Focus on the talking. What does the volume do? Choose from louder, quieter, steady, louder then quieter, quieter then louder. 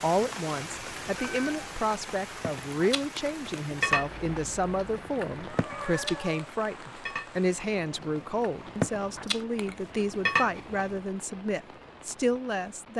steady.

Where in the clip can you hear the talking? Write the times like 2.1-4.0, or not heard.
0.0-12.9.